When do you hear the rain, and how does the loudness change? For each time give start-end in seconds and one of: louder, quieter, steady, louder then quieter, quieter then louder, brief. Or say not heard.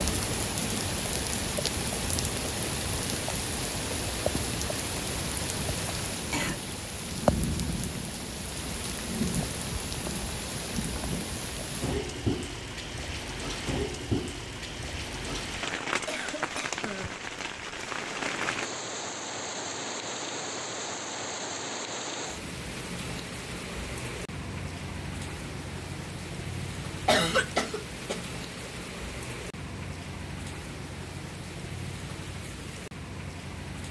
0.0-33.8 quieter.